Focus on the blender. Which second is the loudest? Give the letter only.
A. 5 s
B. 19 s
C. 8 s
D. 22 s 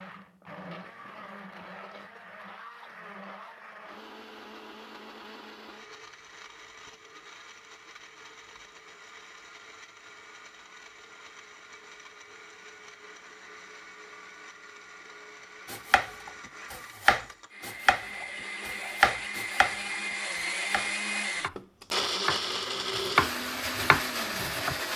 D.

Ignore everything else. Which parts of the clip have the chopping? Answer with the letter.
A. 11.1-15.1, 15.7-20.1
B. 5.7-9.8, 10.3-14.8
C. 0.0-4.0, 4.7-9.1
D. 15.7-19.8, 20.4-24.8
D.